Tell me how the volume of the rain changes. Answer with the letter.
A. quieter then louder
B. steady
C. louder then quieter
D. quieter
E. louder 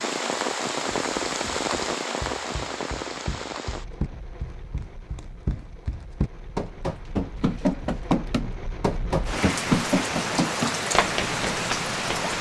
A.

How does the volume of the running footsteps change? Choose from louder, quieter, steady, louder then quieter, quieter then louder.
louder.